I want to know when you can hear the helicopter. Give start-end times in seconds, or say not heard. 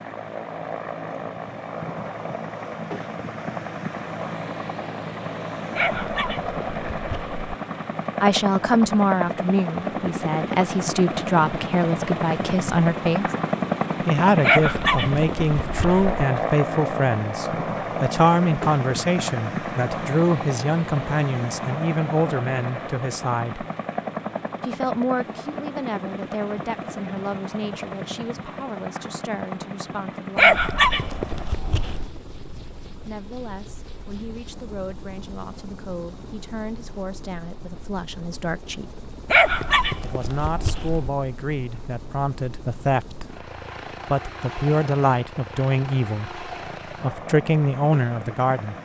0.0-48.8.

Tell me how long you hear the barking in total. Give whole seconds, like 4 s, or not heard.
7 s.